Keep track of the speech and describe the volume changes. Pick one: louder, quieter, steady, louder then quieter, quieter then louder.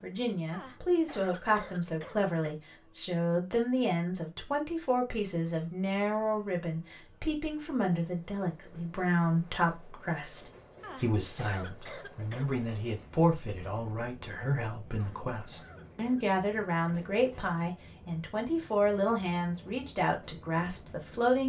steady.